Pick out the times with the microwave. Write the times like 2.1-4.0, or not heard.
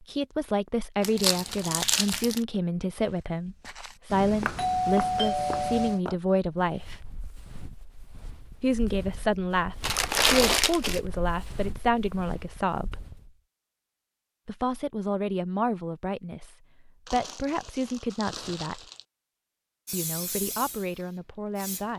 not heard.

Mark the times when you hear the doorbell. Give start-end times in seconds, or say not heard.
4.1-6.0.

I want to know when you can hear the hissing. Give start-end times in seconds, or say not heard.
19.9-21.9.